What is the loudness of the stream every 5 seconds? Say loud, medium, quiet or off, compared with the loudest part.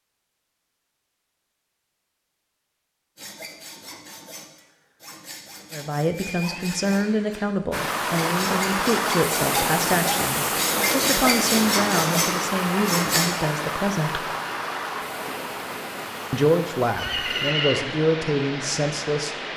off, loud, loud, medium.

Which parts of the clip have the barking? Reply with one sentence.
You can't hear the barking here.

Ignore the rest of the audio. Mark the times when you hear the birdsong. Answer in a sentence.
The birdsong can't be heard in this clip.